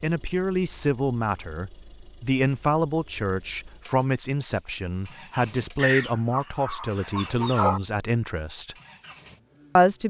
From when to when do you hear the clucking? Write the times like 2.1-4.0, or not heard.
5.8-7.8.